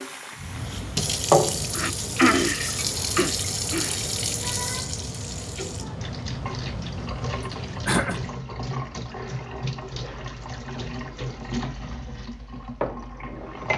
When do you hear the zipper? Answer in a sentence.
You can't hear the zipper here.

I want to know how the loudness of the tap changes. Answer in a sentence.
The loudness of the tap goes down.